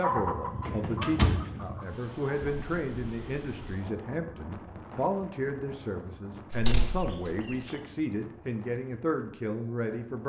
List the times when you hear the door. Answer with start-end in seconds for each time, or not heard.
0.7-1.5, 6.5-7.3.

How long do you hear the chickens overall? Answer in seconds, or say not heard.
4 s.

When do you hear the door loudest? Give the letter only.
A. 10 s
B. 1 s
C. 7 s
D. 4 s
B.